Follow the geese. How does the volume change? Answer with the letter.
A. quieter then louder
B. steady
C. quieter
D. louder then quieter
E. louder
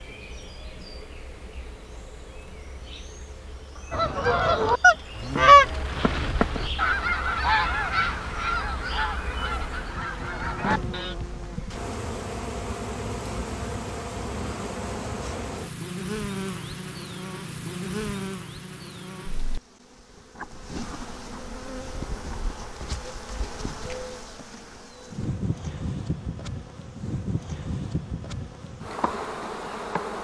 C.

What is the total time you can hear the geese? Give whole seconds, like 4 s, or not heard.
7 s.